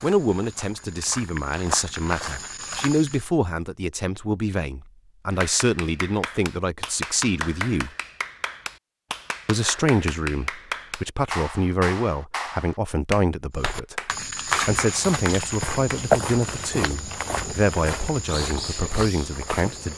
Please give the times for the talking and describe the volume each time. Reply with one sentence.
You can hear the talking from 0.0 to 7.9 s, at a steady volume; and from 9.4 to 19.9 s, at a steady volume.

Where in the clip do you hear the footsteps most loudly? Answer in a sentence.
The volume of the footsteps peaks at 16 seconds.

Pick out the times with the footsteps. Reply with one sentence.
You can hear the footsteps from 0.0 to 3.3 s and from 13.6 to 19.9 s.